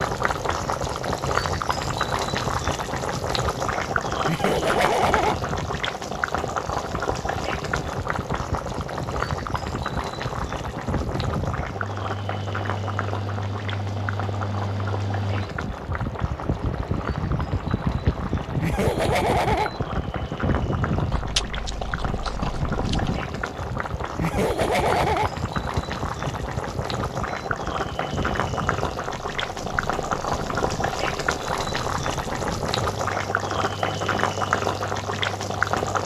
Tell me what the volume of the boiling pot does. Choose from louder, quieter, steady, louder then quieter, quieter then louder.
quieter then louder.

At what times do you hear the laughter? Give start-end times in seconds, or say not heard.
4.2-5.3, 18.6-19.7, 24.2-25.3.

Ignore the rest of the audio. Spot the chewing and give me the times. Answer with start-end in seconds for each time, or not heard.
21.1-23.1.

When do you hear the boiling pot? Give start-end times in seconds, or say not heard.
0.0-36.0.